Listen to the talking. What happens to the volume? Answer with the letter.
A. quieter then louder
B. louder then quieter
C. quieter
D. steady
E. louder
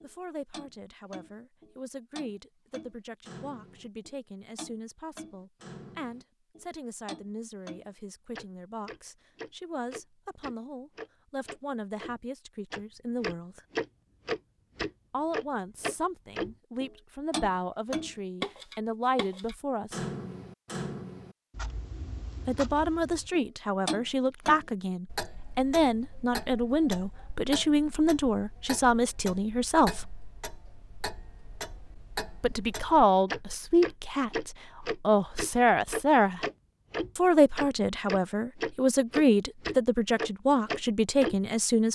E.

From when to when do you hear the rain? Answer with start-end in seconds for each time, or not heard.
not heard.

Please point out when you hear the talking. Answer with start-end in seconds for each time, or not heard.
0.0-13.6, 15.1-20.0, 22.4-30.1, 32.4-36.5, 37.1-41.9.